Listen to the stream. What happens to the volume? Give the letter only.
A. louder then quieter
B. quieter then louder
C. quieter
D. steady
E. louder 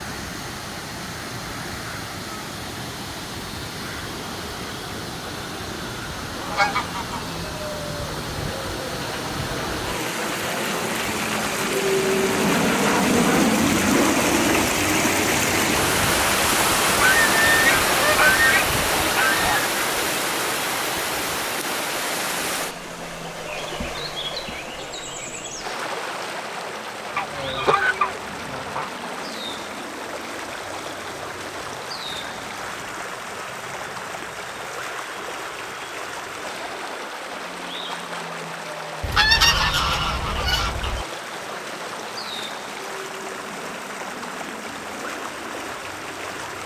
A.